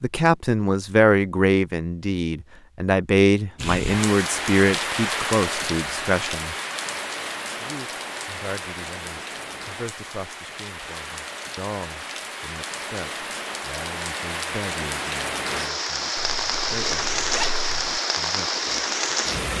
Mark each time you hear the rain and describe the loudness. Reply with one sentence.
You can hear the rain from 3.5 to 19.5 s, getting quieter then louder.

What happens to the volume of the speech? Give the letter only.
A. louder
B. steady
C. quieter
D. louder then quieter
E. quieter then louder
C.